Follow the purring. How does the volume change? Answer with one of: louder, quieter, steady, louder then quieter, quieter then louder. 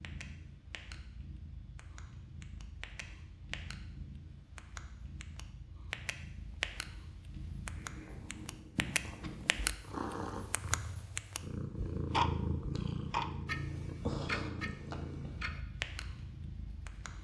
louder.